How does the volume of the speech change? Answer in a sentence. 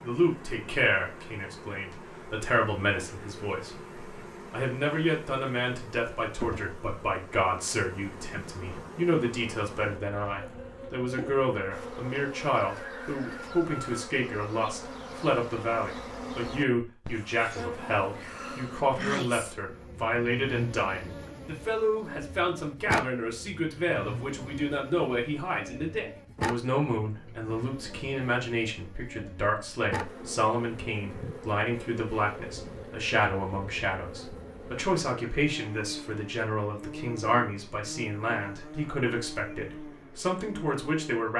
The loudness of the speech stays about the same.